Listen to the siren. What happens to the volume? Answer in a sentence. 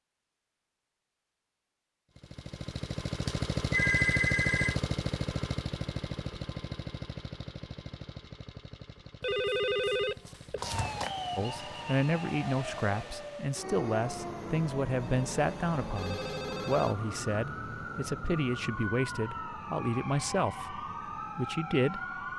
The volume of the siren stays about the same.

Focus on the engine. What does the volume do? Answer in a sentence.
The volume of the engine goes down.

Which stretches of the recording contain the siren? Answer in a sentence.
The siren can be heard from 10.6 to 22.3 s.